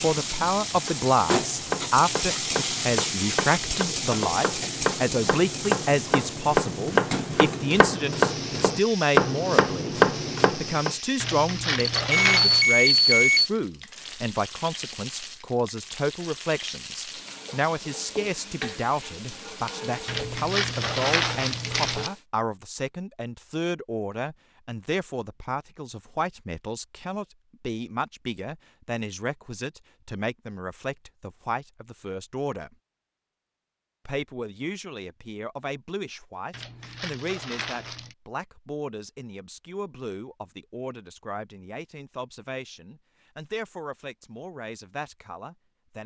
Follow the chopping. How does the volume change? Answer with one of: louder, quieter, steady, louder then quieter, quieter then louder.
louder.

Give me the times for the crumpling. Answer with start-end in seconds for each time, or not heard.
11.2-12.7, 20.1-22.1, 36.5-38.1.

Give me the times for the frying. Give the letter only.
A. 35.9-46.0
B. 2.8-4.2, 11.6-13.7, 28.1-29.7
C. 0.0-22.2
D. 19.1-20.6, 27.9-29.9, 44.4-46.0
C.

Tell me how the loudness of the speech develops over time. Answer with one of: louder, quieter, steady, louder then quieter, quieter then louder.
quieter.